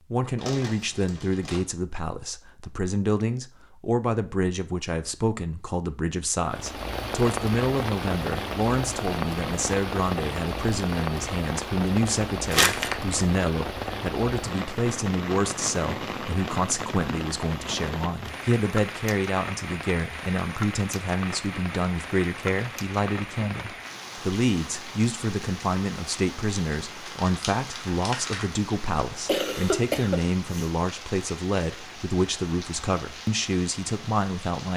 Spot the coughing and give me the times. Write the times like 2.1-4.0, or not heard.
29.2-30.7.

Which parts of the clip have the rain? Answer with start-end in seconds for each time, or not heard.
6.4-34.7.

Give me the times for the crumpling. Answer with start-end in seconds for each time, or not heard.
0.3-1.6, 12.5-12.9, 27.1-28.4.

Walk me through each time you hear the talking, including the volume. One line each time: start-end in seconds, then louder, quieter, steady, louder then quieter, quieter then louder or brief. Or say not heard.
0.1-34.7 steady.